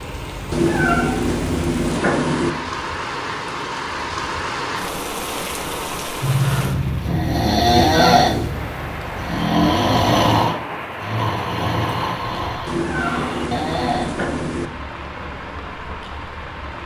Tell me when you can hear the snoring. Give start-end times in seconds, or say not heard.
6.2-14.2.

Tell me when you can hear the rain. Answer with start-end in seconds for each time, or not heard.
0.0-16.8.